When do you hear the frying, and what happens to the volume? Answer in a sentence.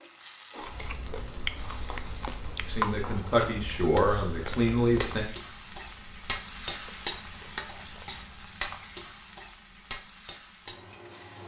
The frying can be heard from 0.0 to 11.4 s, getting louder then quieter.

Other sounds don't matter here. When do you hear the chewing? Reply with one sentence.
The chewing can be heard from 0.6 to 8.3 s.